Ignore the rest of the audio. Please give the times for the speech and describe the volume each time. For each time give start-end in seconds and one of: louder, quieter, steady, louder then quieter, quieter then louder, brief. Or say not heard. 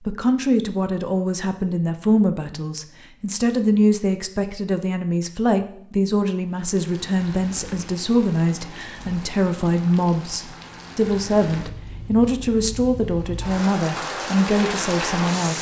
0.1-15.5 steady.